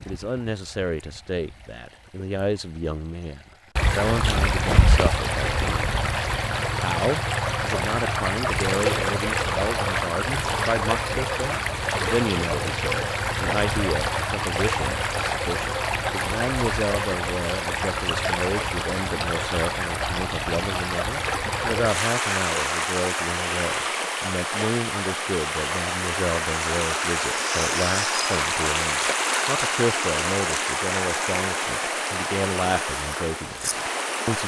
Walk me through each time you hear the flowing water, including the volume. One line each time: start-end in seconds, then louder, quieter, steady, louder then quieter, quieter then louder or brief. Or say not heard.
0.0-34.4 steady.